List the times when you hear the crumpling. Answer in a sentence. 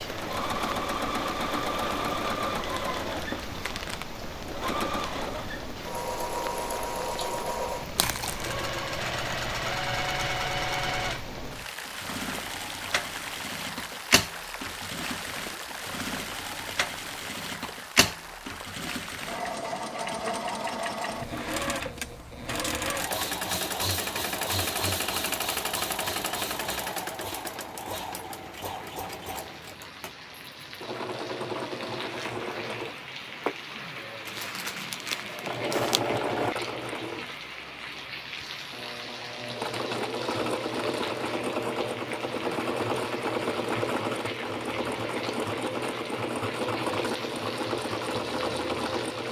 You can hear the crumpling from 8.0 to 8.7 s and from 34.2 to 36.0 s.